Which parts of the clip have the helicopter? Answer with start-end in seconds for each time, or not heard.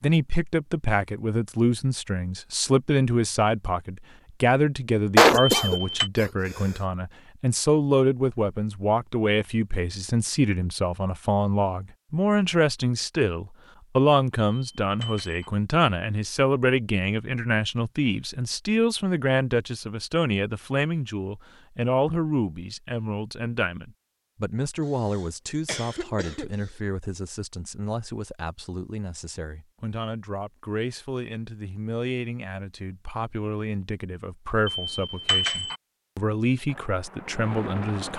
36.6-38.1.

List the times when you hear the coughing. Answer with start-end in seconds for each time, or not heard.
5.2-6.2, 24.8-26.8.